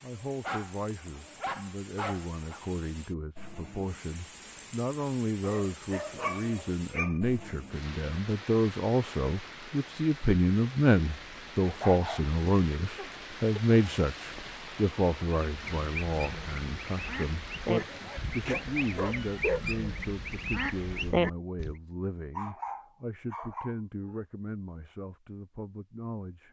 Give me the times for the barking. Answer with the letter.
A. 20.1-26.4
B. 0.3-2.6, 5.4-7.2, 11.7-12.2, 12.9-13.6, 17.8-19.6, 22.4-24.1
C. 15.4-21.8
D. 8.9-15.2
B.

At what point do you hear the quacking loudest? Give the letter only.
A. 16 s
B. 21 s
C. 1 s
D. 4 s
B.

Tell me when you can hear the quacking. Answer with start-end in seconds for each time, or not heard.
15.4-21.8.